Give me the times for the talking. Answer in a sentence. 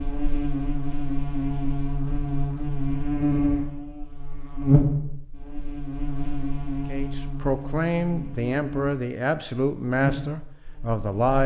The talking can be heard from 6.8 to 11.4 s.